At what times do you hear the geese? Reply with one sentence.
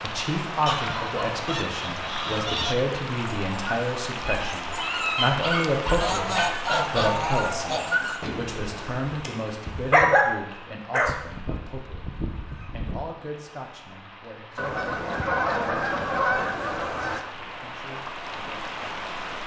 You can hear the geese from 0.7 to 2.8 s, from 6.0 to 8.1 s, from 11.1 to 13.1 s and from 14.6 to 17.2 s.